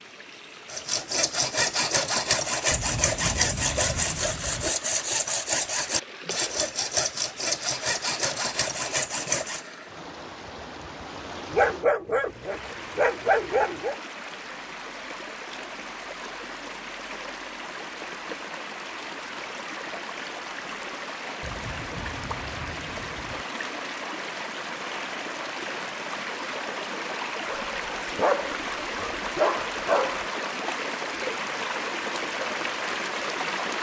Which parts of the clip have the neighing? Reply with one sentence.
The neighing can't be heard in this clip.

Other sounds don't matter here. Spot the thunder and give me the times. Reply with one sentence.
The thunder can be heard from 2.7 to 4.7 s and from 21.4 to 23.4 s.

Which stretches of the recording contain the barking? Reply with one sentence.
The barking can be heard from 11.5 to 13.9 s and from 27.4 to 30.2 s.